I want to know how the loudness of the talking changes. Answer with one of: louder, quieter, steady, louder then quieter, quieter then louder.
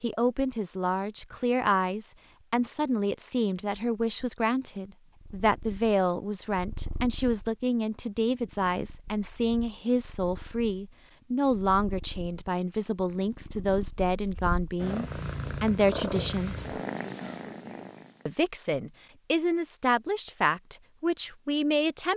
steady.